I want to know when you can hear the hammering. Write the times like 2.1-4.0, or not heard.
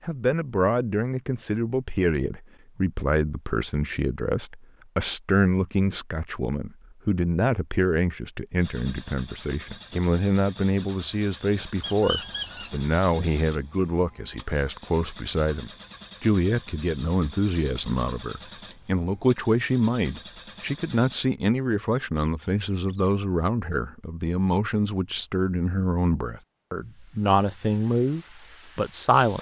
not heard.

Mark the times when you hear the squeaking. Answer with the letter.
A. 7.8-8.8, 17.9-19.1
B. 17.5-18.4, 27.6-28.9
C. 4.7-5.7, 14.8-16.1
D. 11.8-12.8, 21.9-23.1
D.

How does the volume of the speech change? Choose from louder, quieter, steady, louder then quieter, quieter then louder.
steady.